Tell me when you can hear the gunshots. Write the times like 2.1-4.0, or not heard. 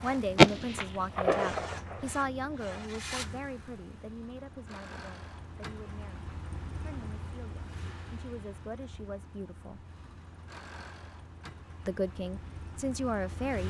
0.3-2.0.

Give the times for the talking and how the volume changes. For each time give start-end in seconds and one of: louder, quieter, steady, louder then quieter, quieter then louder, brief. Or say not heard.
0.0-9.8 quieter then louder
11.8-13.6 brief.